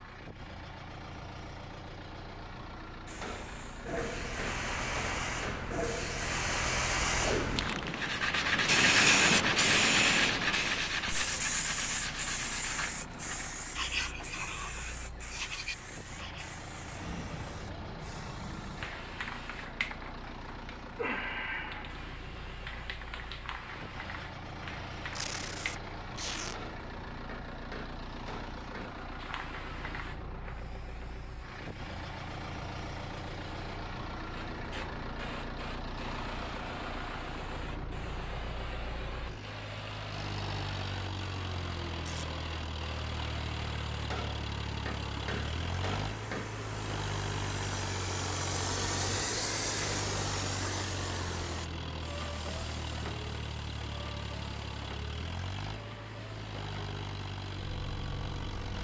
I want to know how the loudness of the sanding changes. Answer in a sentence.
The volume of the sanding goes down.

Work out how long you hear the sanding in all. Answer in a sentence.
You can hear the sanding for 9 seconds altogether.